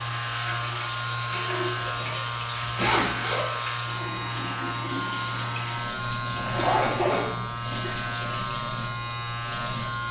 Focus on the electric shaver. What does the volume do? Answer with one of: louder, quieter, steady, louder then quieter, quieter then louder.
steady.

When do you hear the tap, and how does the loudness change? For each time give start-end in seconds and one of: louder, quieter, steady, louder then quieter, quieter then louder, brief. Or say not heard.
0.0-10.0 steady.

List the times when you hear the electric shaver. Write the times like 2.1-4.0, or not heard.
0.0-10.0.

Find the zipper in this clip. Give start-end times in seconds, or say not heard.
1.8-3.5, 6.2-7.5.